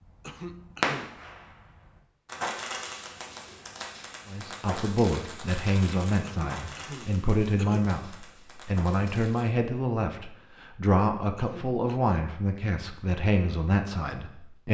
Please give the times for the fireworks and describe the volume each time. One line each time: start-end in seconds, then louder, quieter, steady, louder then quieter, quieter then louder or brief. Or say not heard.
0.0-9.4 quieter.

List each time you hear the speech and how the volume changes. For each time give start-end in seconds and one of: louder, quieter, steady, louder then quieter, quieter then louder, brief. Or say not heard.
4.2-14.6 steady.